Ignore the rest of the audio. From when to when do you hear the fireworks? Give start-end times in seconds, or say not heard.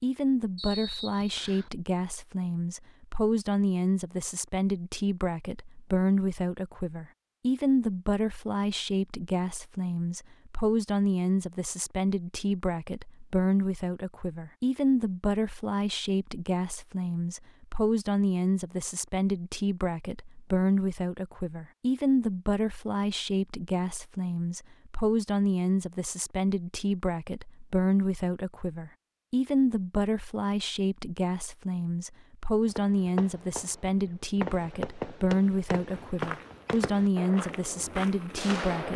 32.6-38.9.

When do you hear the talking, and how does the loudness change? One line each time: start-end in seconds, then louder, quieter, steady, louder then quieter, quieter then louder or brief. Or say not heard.
0.0-38.9 steady.